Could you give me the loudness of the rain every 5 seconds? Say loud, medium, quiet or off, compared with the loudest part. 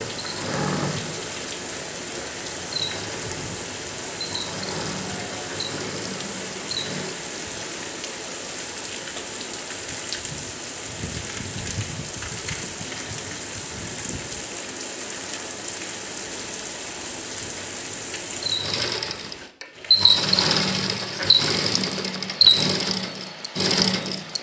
loud, loud, loud, loud, medium.